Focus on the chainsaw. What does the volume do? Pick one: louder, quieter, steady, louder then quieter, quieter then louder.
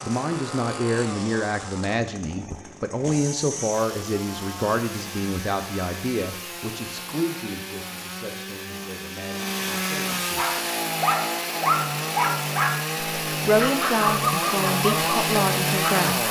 louder.